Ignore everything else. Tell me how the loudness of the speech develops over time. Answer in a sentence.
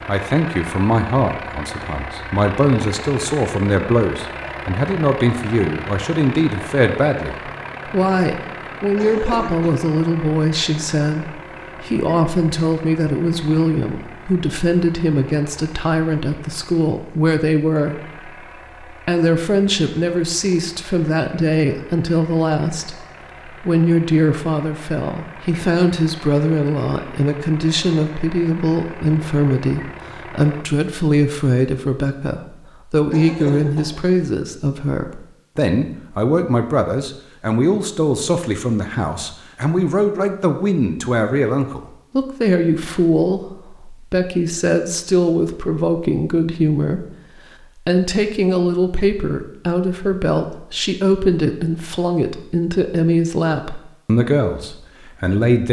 The volume of the speech stays about the same.